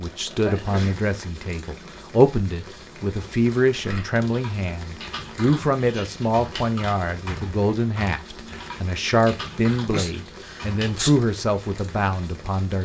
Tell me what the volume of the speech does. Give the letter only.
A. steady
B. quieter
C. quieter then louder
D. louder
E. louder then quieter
A.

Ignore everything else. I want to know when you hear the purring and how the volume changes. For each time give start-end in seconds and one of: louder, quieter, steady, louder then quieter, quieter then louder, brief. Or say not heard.
not heard.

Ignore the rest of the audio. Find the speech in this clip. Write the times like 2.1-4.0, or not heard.
0.0-12.8.